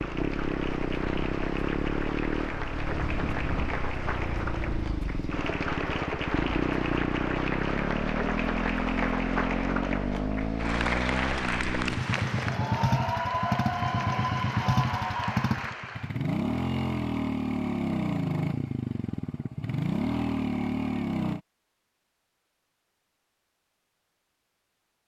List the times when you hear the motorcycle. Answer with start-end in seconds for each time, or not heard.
0.0-21.4.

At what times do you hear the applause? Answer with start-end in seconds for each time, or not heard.
0.0-16.2.